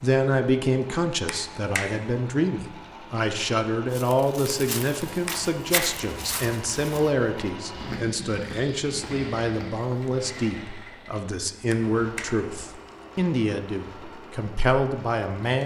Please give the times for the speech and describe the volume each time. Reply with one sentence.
The speech can be heard from 0.0 to 15.6 s, at a steady volume.